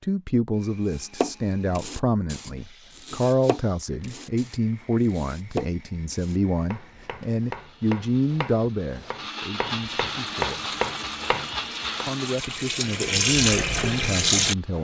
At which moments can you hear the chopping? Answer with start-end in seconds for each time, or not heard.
0.9-12.1.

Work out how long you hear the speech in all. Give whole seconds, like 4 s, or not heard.
13 s.